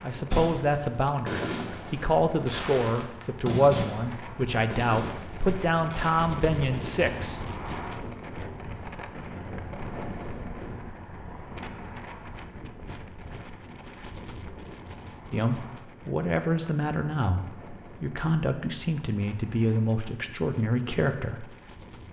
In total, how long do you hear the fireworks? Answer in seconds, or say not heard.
6 s.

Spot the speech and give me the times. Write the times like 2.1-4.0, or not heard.
0.0-7.5, 15.3-21.5.